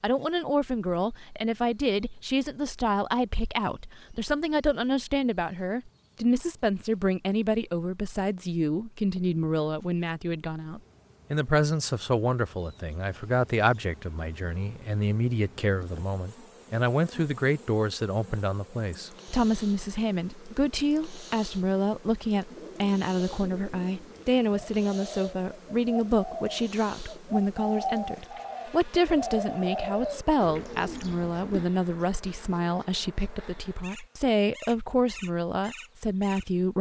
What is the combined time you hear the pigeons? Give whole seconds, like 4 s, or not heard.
9 s.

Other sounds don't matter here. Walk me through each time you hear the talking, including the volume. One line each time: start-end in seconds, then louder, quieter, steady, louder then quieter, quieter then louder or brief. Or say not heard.
0.0-36.7 steady.